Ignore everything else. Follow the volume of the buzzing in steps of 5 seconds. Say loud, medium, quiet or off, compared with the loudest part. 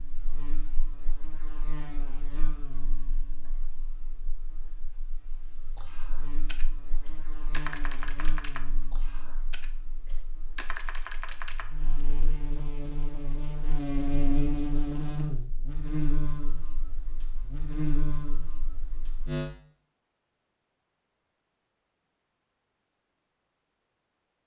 quiet, quiet, loud, loud, off.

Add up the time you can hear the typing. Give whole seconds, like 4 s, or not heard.
6 s.